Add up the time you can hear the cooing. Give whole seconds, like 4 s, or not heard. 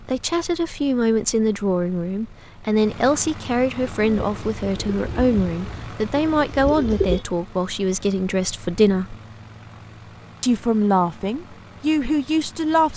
3 s.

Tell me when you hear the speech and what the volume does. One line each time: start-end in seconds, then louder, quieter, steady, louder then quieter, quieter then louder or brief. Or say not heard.
0.0-9.2 steady
10.4-12.9 brief.